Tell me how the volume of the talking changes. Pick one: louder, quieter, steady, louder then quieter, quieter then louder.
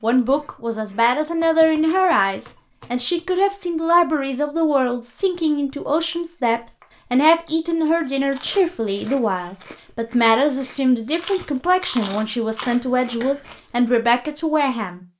steady.